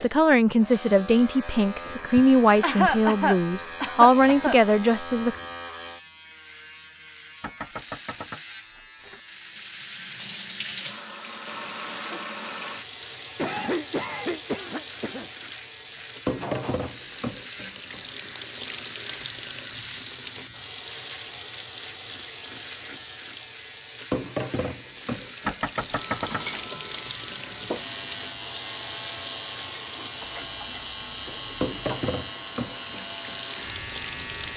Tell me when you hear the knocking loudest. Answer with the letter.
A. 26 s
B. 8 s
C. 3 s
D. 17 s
A.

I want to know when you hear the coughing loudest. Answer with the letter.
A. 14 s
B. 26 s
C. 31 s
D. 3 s
D.